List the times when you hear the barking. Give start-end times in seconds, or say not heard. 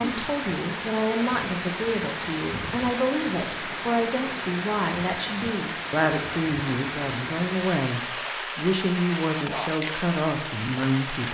not heard.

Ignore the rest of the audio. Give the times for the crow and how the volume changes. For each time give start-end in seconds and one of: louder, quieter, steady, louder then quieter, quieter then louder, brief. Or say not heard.
not heard.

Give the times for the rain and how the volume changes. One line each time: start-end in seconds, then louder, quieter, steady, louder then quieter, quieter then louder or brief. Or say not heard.
0.0-11.3 steady.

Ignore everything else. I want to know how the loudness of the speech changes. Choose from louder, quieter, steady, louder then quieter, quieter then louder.
steady.